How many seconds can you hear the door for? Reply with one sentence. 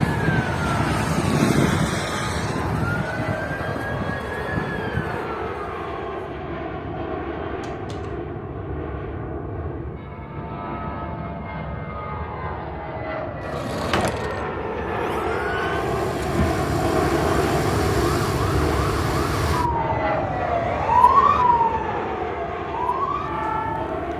The door can be heard for 2 seconds in total.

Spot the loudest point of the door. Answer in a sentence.
The loudest moment of the door is at 14 seconds.